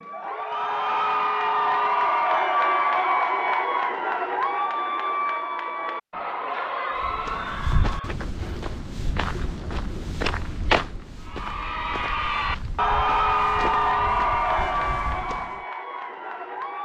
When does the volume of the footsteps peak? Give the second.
11 s.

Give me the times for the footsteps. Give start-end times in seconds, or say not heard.
7.0-15.5.